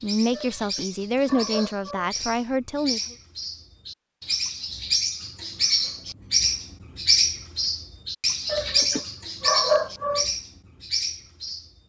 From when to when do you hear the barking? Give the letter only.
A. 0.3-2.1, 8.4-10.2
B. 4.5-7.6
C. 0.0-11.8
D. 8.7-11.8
A.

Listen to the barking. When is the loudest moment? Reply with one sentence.
The volume of the barking peaks at 10 seconds.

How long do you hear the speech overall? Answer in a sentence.
The speech can be heard for 3 seconds in total.